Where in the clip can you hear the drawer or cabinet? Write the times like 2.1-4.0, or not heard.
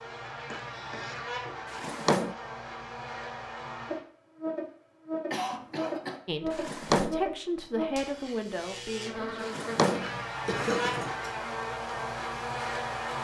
1.7-2.4, 6.5-7.2, 9.4-11.1.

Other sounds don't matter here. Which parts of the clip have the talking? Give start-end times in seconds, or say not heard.
6.2-9.4.